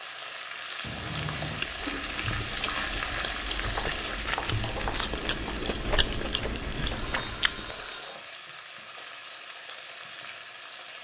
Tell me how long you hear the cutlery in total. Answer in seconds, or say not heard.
not heard.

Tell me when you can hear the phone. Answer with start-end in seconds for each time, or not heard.
0.8-1.7, 7.1-8.2.